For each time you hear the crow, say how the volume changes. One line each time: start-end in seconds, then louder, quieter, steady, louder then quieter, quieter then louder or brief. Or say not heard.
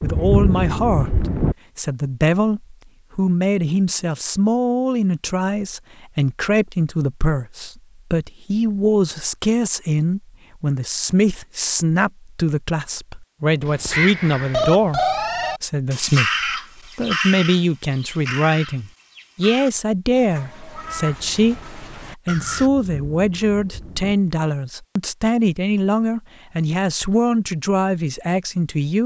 13.6-22.7 quieter.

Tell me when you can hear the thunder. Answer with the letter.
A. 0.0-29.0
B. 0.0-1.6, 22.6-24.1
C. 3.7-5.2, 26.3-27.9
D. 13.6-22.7
B.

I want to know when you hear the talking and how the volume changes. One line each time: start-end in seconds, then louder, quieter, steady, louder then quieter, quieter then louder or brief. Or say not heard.
0.0-29.0 steady.